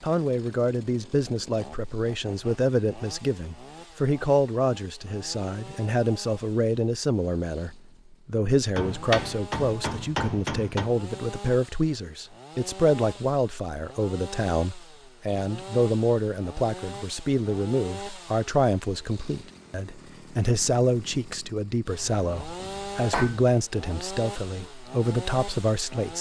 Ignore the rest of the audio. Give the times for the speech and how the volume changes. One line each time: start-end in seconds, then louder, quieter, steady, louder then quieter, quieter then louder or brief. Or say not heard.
0.0-26.1 steady.